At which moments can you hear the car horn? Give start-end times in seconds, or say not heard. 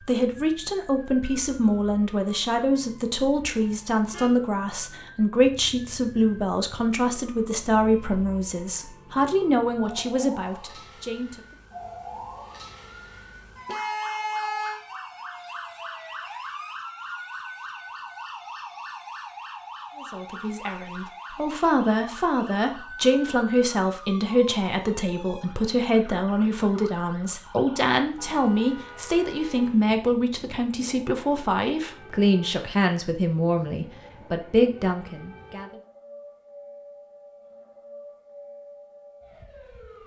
3.7-4.3, 13.7-14.8, 28.1-29.8.